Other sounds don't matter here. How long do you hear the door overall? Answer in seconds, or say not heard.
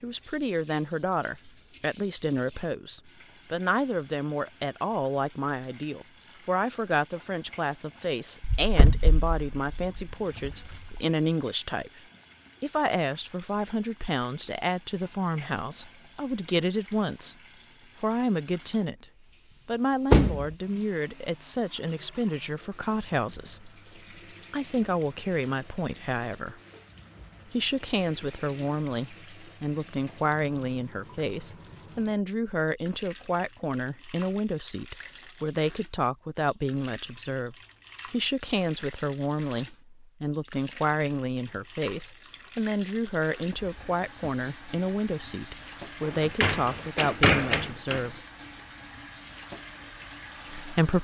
5 s.